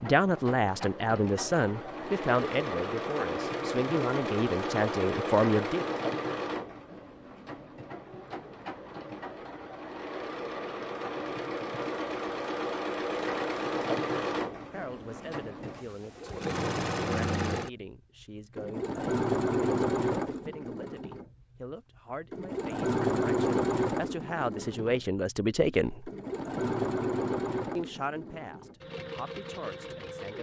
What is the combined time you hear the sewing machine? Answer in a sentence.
You can hear the sewing machine for 28 seconds altogether.